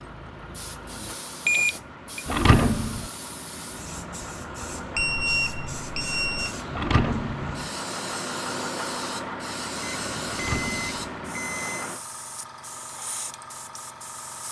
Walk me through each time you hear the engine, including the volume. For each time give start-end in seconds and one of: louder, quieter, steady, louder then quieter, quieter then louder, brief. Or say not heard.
0.0-12.0 louder.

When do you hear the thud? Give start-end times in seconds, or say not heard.
2.2-3.1, 6.7-7.5, 10.2-11.1.